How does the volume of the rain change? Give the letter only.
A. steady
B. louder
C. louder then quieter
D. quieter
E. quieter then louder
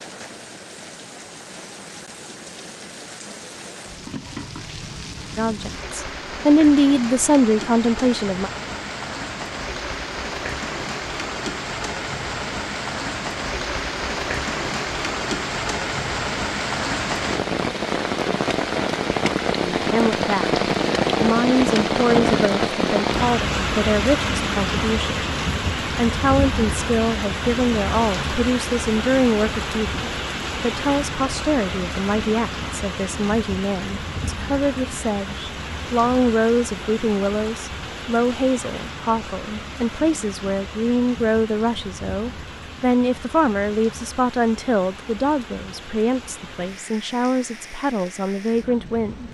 C.